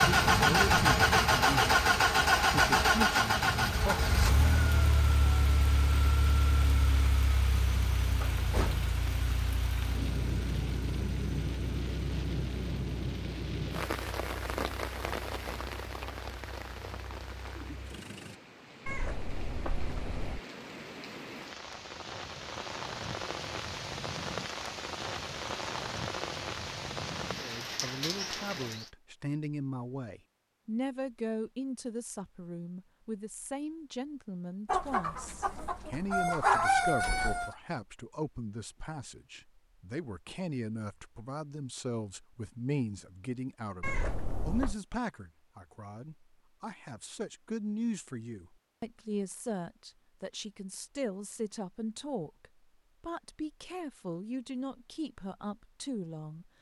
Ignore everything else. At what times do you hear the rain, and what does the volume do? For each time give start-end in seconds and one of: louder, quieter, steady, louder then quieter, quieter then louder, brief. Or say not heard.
0.0-28.9 quieter then louder.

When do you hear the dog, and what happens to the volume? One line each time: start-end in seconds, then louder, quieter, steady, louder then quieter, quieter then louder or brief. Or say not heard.
not heard.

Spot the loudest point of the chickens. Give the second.
37 s.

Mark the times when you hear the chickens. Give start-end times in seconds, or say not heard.
34.6-37.5.